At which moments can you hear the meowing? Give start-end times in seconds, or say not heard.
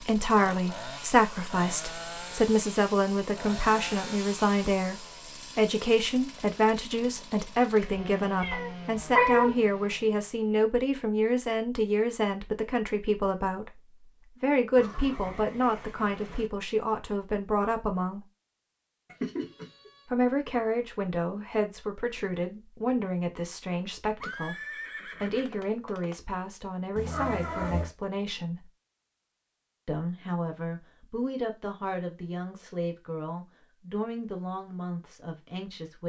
7.8-9.6, 19.1-19.9, 26.9-27.9.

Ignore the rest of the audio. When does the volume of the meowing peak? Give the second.
9 s.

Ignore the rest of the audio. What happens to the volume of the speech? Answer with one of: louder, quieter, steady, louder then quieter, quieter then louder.
quieter.